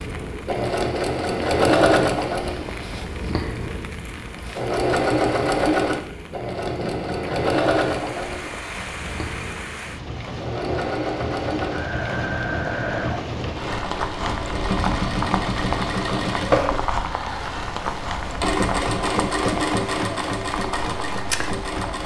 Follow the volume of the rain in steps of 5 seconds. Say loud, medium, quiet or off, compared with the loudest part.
medium, medium, loud, loud, medium.